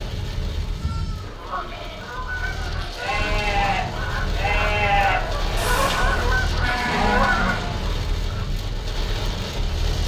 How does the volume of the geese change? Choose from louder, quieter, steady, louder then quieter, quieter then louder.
louder.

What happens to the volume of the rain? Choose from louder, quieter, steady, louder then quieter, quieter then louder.
louder.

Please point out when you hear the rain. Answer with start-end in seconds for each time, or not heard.
0.0-10.0.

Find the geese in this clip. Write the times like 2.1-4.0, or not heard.
1.1-8.5.